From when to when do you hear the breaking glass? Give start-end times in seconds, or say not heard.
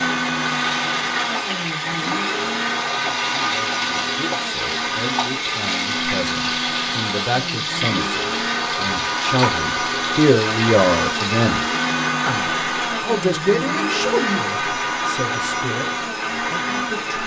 not heard.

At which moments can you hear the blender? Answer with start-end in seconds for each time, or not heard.
0.0-17.2.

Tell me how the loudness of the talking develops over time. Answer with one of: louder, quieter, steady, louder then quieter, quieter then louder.
louder then quieter.